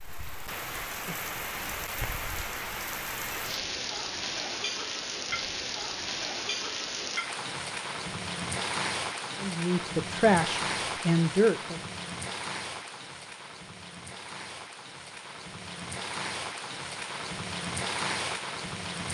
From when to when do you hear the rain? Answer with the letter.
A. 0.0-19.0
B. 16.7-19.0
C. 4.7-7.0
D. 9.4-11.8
A.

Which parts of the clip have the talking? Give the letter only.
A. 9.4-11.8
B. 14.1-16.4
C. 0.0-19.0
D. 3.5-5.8
A.